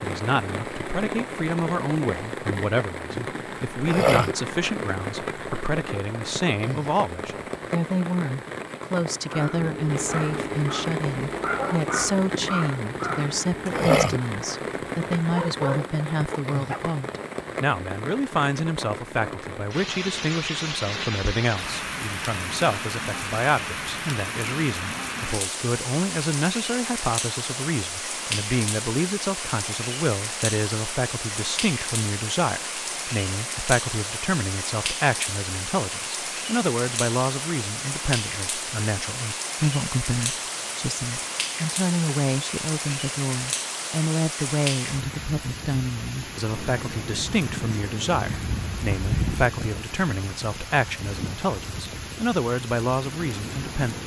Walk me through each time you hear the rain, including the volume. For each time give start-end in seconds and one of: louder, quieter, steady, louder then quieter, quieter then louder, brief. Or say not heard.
0.0-54.0 steady.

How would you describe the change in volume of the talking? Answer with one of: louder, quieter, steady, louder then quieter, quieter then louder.
steady.